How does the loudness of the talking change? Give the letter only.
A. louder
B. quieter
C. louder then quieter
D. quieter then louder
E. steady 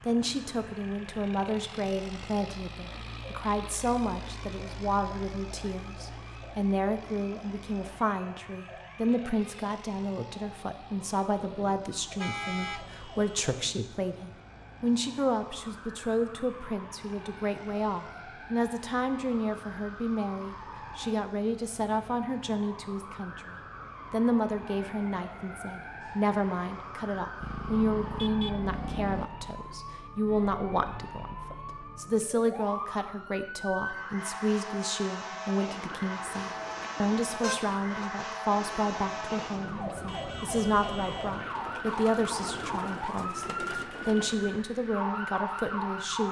E.